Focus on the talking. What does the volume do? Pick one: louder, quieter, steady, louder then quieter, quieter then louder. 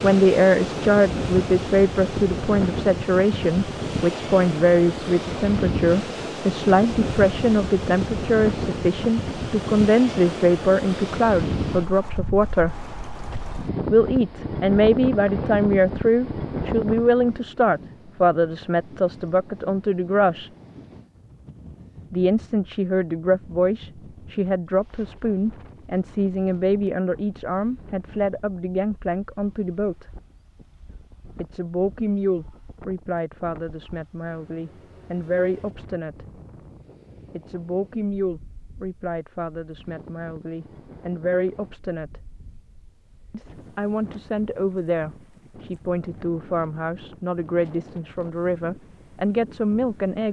quieter.